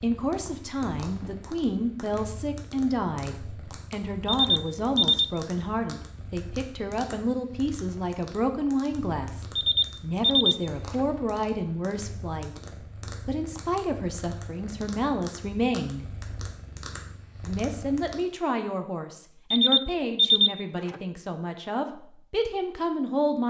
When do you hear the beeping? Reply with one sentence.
You can hear the beeping from 4.3 to 5.2 s, from 9.6 to 11.1 s and from 19.5 to 21.0 s.